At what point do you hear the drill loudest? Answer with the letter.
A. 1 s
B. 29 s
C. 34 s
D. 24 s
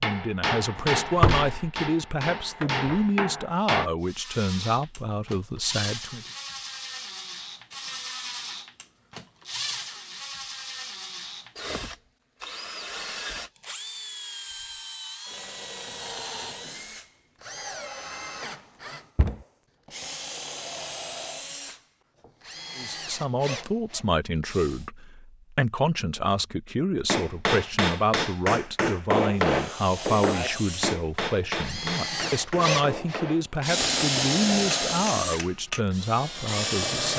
C.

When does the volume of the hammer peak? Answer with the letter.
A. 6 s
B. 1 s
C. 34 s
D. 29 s
D.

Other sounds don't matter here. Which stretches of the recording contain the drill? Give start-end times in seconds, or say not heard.
4.0-24.9, 29.4-37.1.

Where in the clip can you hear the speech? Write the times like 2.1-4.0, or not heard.
0.0-6.2, 22.8-37.1.